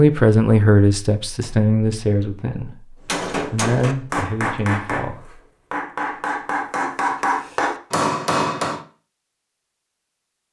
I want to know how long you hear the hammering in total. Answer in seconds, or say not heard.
6 s.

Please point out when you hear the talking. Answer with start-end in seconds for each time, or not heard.
0.0-5.4.